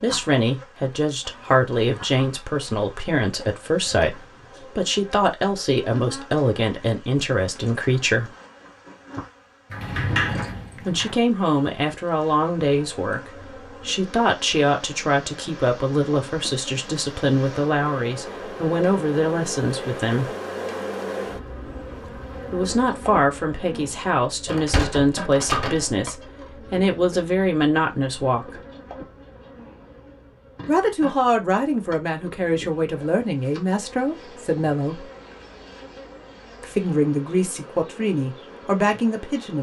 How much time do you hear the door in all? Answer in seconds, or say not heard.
3 s.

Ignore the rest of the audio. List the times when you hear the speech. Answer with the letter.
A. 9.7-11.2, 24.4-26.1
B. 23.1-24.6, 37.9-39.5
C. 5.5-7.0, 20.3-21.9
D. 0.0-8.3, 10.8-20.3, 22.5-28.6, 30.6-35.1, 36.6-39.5
D.